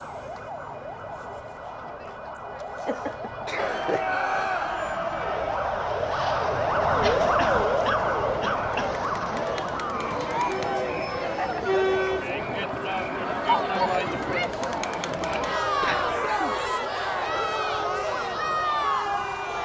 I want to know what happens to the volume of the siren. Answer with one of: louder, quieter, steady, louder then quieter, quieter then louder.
louder then quieter.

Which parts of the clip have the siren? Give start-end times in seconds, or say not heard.
0.0-19.5.